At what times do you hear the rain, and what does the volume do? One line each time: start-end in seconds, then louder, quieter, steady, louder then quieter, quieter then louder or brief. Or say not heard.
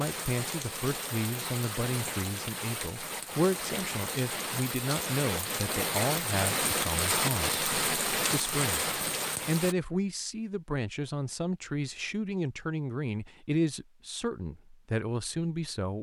0.0-9.8 louder.